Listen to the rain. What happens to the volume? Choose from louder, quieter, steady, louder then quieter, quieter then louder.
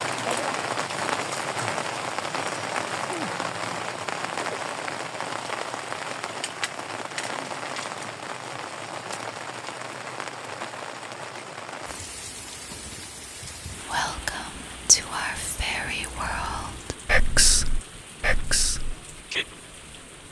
quieter.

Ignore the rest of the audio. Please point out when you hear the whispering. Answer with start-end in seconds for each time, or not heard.
13.8-19.4.